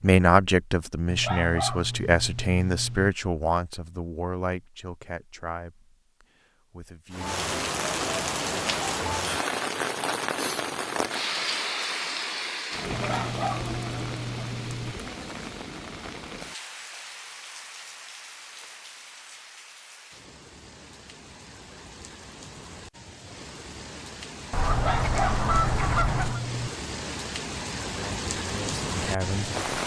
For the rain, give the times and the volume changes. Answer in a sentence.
You can hear the rain from 7.1 to 29.8 s, getting quieter then louder.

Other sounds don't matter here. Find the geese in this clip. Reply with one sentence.
You can hear the geese from 24.5 to 26.4 s.